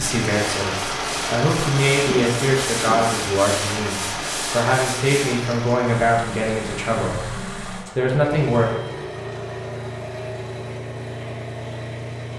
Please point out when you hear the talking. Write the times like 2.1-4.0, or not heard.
0.0-8.7.